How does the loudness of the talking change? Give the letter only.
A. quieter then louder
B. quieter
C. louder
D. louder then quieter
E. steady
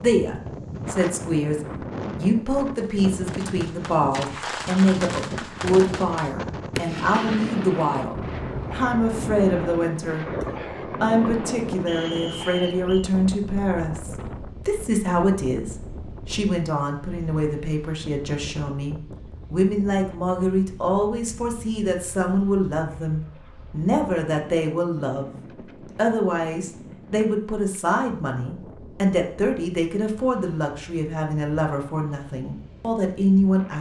E.